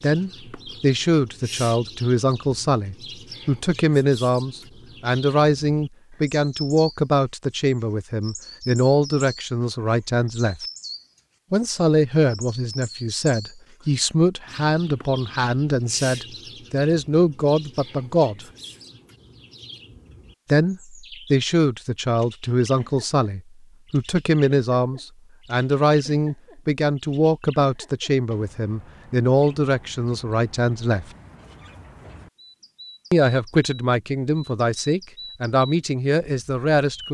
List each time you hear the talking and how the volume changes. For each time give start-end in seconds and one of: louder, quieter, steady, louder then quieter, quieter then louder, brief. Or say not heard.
0.0-10.6 steady
11.5-18.4 steady
20.4-31.1 steady
33.1-37.1 steady.